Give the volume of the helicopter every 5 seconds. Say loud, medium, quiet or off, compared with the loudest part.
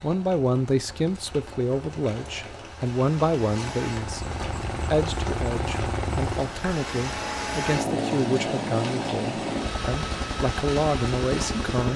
medium, loud, loud.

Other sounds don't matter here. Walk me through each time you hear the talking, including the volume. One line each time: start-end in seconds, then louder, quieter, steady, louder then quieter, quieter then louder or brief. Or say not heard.
0.0-11.9 steady.